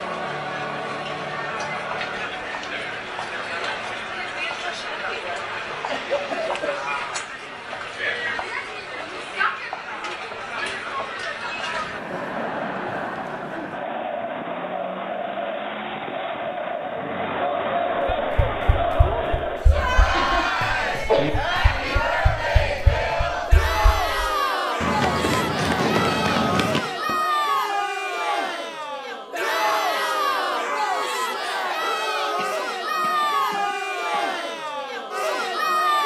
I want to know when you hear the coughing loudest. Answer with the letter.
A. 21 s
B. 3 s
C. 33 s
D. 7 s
A.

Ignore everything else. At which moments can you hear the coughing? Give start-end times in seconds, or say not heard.
5.8-6.8, 20.1-21.3, 32.4-34.2.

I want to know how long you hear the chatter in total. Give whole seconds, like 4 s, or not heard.
36 s.